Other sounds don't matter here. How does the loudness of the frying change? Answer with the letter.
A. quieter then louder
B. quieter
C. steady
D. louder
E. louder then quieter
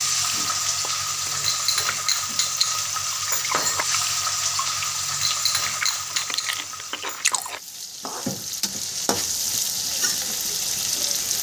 A.